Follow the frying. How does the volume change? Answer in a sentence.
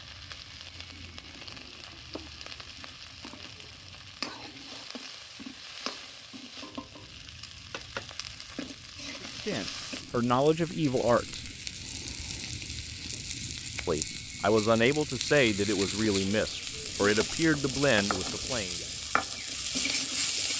The loudness of the frying goes up.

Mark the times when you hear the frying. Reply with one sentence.
The frying can be heard from 0.0 to 20.5 s.